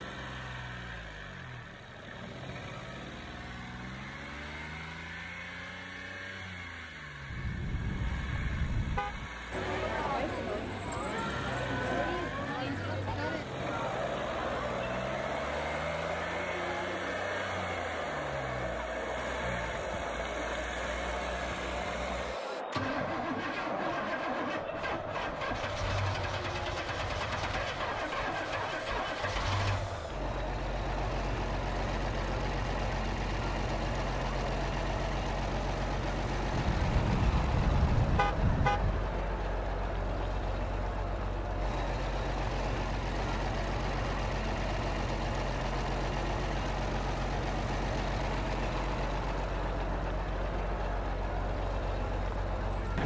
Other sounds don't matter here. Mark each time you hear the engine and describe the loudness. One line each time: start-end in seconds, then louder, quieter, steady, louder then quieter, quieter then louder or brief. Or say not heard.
0.0-53.0 louder.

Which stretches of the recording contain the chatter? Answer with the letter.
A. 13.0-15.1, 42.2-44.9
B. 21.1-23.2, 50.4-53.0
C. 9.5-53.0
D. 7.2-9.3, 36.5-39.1
C.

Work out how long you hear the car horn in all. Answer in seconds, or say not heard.
5 s.